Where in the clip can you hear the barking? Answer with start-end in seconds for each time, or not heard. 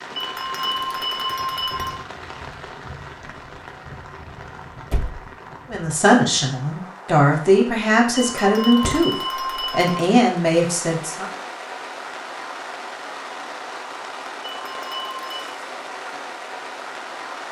not heard.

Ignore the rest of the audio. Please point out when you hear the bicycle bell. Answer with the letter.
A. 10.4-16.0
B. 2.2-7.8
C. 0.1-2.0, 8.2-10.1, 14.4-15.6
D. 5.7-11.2
C.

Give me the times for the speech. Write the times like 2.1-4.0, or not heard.
5.7-11.2.